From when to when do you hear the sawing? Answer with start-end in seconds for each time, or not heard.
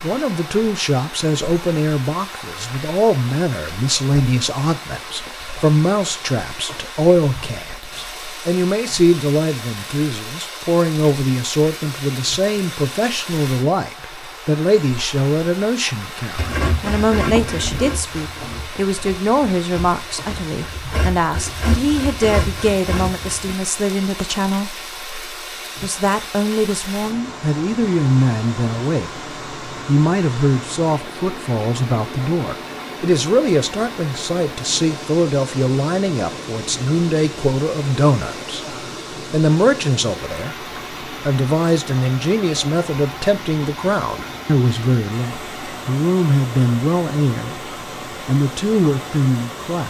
16.4-23.6.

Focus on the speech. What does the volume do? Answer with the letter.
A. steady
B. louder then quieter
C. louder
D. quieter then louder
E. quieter
A.